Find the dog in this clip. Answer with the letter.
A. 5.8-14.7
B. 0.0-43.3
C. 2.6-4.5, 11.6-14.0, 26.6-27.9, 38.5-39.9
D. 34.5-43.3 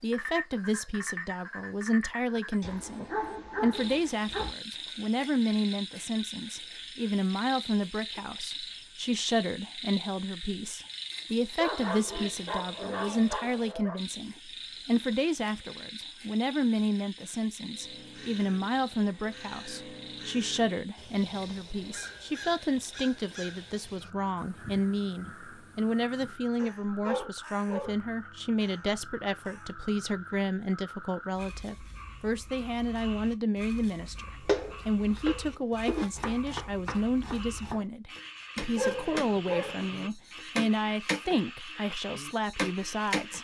C.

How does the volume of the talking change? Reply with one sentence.
The loudness of the talking stays about the same.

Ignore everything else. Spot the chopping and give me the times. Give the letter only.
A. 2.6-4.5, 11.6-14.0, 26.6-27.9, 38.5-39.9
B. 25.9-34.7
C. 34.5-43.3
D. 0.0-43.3
C.